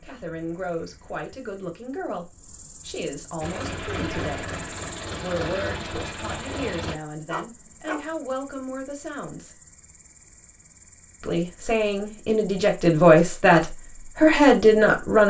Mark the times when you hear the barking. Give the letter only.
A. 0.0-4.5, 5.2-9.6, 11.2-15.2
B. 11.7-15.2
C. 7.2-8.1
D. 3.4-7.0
C.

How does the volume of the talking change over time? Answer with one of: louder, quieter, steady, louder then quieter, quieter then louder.
louder.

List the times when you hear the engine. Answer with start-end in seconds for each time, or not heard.
3.4-7.0.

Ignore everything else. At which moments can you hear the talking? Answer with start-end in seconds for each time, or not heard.
0.0-4.5, 5.2-9.6, 11.2-15.2.